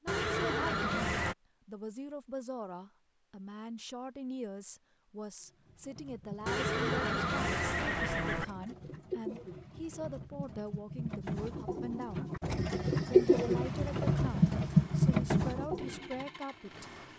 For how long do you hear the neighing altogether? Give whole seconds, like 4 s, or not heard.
4 s.